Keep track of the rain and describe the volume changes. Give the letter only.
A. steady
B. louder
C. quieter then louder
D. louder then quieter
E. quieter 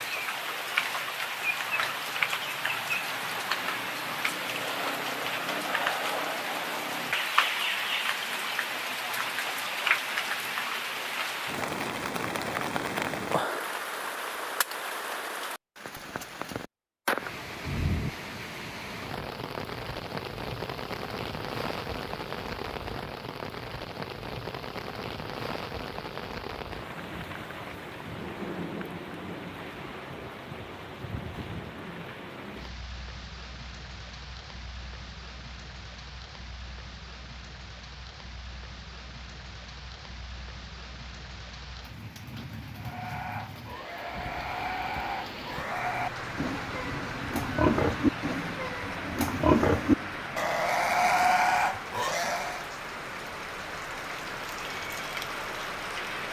C.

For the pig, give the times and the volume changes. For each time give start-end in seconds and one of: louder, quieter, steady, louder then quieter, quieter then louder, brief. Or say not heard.
42.8-52.6 louder.